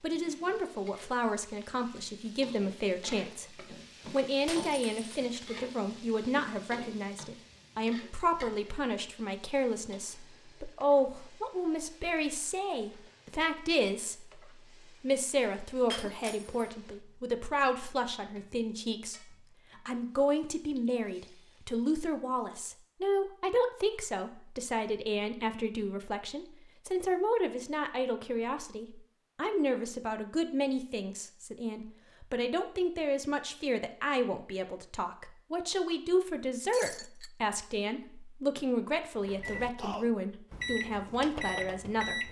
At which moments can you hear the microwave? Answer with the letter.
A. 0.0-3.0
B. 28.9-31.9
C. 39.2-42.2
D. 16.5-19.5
C.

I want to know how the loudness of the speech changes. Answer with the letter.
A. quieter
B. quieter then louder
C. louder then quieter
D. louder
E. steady
E.